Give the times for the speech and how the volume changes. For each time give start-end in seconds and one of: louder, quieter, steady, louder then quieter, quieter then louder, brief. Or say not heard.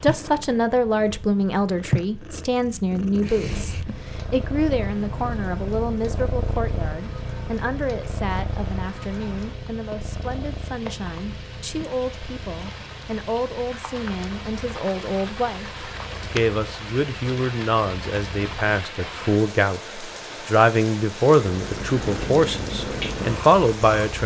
0.0-24.2 quieter then louder.